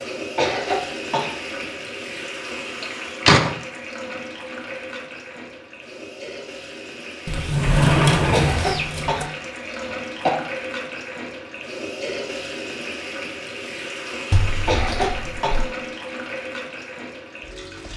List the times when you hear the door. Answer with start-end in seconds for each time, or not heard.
2.8-3.6, 7.2-9.2, 14.3-15.7.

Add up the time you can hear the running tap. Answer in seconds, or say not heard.
18 s.